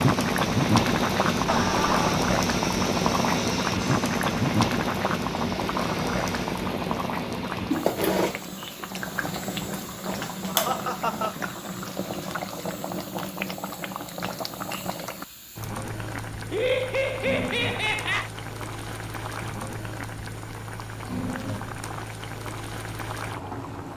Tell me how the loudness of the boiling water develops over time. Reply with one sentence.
The loudness of the boiling water goes down.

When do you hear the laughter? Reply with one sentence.
The laughter can be heard from 1.4 to 2.1 s, from 10.4 to 11.3 s and from 16.5 to 18.3 s.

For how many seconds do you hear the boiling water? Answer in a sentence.
The boiling water can be heard for 24 seconds in total.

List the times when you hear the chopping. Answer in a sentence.
The chopping can't be heard in this clip.